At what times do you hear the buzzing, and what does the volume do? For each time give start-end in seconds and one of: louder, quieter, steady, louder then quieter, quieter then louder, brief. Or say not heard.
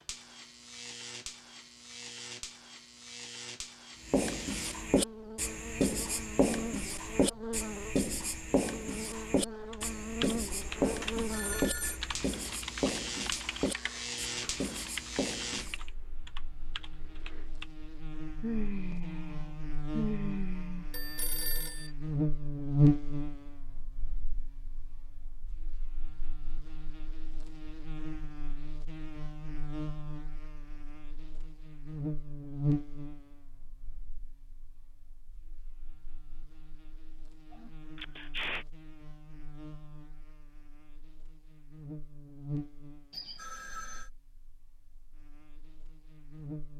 0.0-46.7 louder then quieter.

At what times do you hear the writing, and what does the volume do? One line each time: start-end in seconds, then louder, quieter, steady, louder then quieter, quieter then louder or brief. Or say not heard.
4.0-15.8 quieter.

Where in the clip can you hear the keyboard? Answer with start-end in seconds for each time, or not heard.
9.7-17.7.